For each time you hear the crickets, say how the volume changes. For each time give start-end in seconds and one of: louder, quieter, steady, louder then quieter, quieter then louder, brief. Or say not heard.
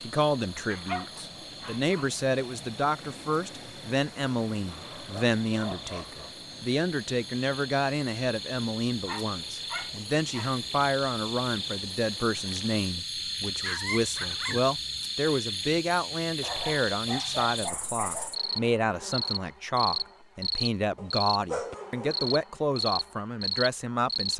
0.0-24.3 louder.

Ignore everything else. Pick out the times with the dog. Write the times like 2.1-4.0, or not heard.
0.7-2.1, 4.7-6.3, 9.1-10.5, 13.5-14.6, 16.4-18.4, 20.9-22.2.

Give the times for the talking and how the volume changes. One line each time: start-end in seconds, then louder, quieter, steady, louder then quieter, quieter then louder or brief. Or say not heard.
0.0-24.3 steady.